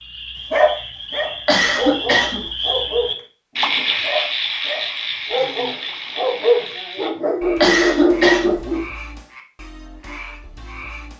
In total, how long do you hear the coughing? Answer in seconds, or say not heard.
2 s.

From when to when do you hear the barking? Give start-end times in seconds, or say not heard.
0.5-8.8.